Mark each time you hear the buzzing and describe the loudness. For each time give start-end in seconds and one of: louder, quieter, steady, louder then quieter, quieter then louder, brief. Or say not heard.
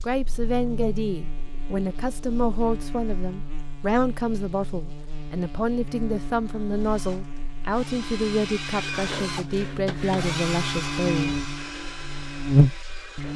0.0-13.3 louder.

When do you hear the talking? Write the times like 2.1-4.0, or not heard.
0.0-11.4.